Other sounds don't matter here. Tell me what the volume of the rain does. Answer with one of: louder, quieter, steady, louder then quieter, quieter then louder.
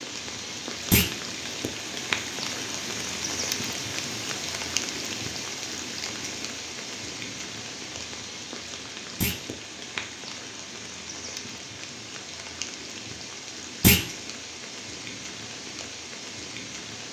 quieter.